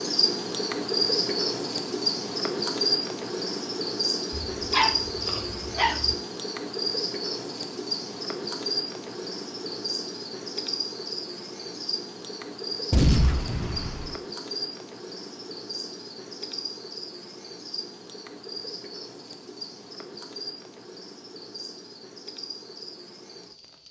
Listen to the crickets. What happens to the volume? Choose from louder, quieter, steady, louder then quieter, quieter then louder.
quieter.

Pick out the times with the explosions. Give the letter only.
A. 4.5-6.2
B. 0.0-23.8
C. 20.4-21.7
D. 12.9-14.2
D.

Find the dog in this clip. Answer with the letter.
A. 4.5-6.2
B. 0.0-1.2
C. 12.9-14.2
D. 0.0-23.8
A.